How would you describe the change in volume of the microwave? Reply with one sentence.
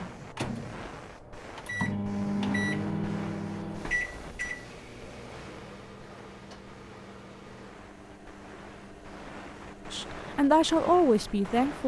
The volume of the microwave goes down.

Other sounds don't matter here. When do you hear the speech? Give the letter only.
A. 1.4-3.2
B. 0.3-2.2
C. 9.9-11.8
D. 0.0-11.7
C.